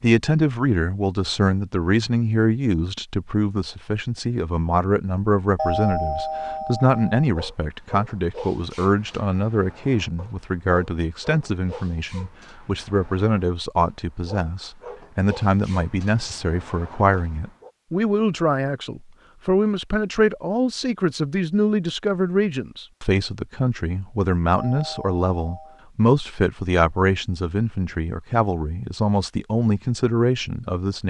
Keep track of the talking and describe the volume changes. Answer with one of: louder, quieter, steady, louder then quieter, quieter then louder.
steady.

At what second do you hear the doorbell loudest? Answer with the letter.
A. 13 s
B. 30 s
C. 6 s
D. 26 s
C.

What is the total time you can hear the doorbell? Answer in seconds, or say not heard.
3 s.